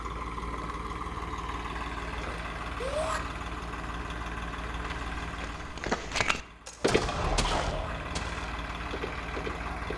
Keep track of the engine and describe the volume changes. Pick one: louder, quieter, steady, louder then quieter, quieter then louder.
quieter then louder.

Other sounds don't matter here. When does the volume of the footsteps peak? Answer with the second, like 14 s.
6 s.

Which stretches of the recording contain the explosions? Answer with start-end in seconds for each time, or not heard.
6.7-8.2.